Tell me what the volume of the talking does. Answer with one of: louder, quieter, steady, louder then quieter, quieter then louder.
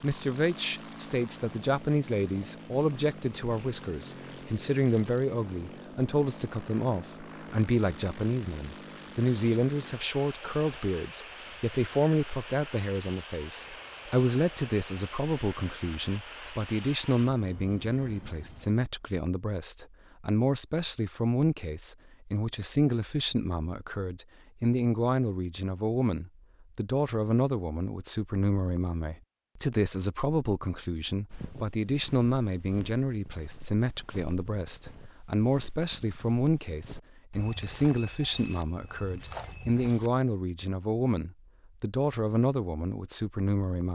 steady.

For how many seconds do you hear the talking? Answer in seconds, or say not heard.
44 s.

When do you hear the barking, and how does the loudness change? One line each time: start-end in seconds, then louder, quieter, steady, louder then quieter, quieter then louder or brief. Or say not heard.
not heard.